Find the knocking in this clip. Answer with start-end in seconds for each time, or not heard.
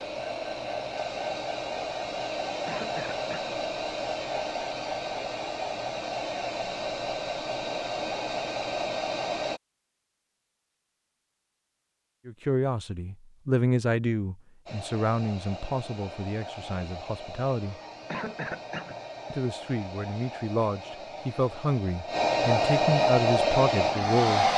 not heard.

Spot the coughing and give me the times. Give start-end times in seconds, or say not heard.
2.6-3.5, 18.1-19.0.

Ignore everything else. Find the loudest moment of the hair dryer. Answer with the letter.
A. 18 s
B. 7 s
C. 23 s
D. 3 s
C.